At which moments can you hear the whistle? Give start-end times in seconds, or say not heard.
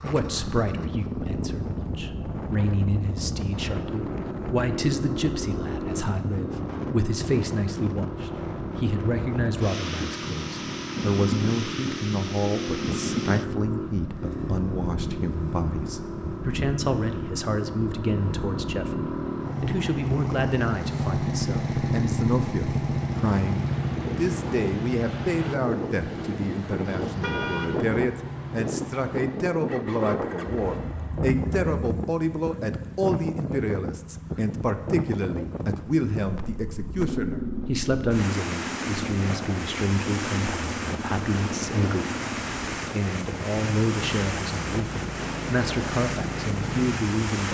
not heard.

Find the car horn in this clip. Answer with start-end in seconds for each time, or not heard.
26.8-27.8.